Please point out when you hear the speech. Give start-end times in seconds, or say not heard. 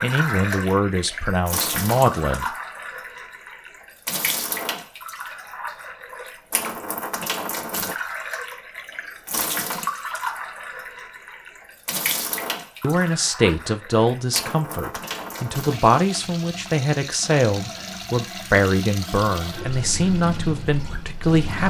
0.0-2.5, 12.8-21.6.